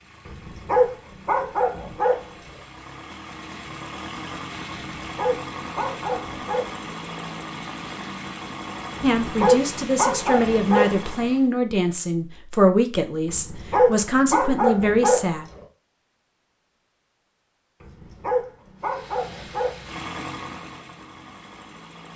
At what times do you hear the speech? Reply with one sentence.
The speech can be heard from 9.0 to 15.4 s.